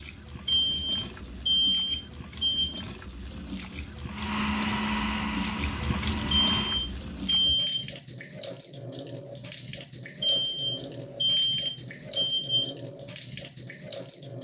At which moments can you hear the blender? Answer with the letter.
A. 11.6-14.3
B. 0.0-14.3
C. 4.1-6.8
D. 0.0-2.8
C.